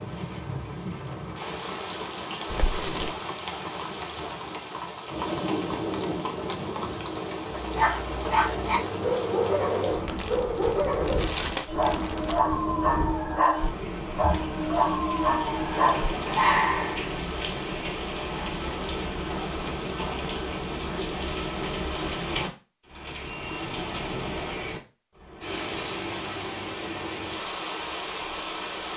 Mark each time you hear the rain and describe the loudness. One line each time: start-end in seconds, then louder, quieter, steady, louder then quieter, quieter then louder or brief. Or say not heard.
0.0-28.9 steady.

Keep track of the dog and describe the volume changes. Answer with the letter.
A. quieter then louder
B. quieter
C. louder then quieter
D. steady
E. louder
D.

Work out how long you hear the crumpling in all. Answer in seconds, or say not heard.
4 s.